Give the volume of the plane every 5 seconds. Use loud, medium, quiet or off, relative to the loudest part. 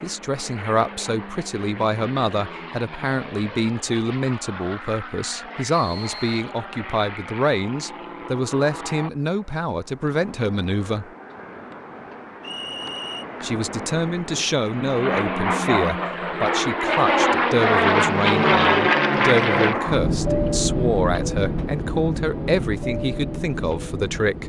quiet, quiet, quiet, loud, medium.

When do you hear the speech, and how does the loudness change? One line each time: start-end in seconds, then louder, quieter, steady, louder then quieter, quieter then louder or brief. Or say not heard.
0.0-11.1 steady
13.4-24.4 steady.